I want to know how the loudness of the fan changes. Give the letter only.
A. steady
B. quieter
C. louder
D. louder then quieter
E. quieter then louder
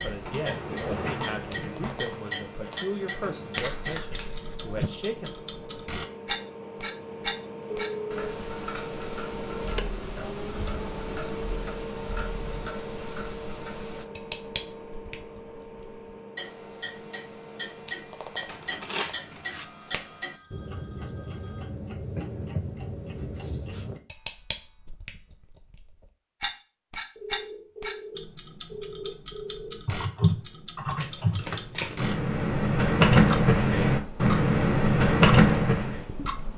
D.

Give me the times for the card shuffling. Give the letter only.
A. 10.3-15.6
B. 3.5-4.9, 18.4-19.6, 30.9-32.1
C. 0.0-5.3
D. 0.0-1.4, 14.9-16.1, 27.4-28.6
B.